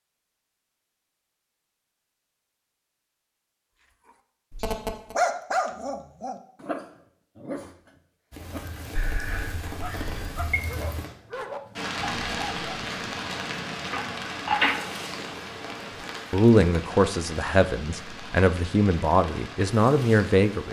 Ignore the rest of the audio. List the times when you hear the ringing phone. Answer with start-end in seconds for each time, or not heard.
4.5-5.2, 8.9-10.4, 13.9-14.8.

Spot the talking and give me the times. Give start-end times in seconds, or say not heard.
16.3-20.6.